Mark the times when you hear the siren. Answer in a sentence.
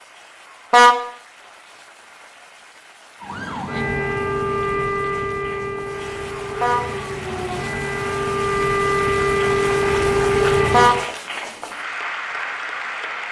You can hear the siren from 3.2 to 11.1 s.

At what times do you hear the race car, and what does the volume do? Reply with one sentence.
The race car can't be heard in this clip.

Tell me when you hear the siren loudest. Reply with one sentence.
The volume of the siren peaks at 10 seconds.